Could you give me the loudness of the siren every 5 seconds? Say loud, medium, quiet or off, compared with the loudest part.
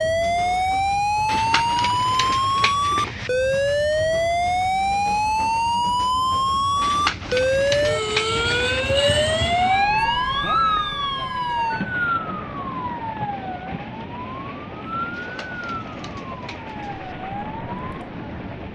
loud, loud, medium, quiet.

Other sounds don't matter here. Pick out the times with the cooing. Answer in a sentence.
You can hear the cooing from 1.2 to 3.3 s, from 6.8 to 8.8 s and from 15.1 to 17.1 s.